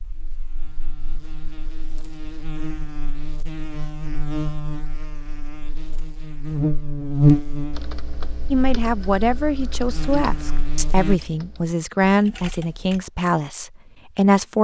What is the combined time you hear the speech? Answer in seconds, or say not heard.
6 s.